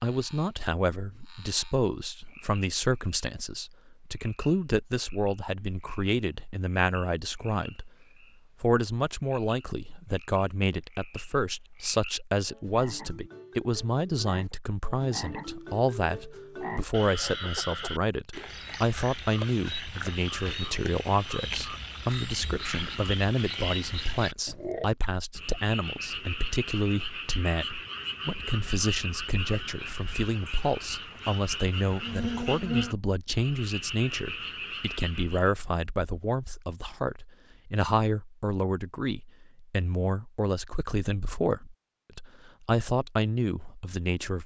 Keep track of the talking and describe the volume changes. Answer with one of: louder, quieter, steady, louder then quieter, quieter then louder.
steady.